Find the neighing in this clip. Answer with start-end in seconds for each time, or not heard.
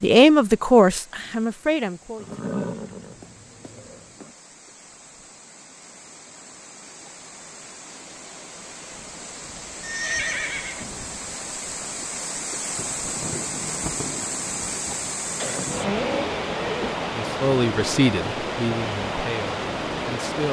2.1-4.3, 9.8-10.8, 15.4-16.9.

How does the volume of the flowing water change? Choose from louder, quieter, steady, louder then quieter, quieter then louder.
louder.